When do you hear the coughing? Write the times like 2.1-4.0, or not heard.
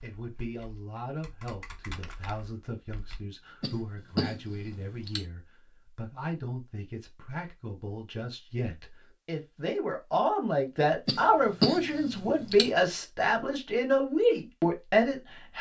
3.6-5.2, 11.1-12.7.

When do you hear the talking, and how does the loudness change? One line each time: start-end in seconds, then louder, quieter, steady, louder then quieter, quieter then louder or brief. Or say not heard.
0.0-15.5 louder.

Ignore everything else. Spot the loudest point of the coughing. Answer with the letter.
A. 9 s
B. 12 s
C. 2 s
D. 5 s
B.